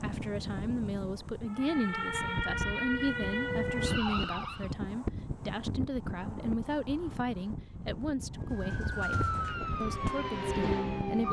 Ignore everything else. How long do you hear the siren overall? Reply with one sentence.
You can hear the siren for 6 seconds altogether.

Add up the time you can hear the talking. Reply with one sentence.
The talking can be heard for 11 seconds in total.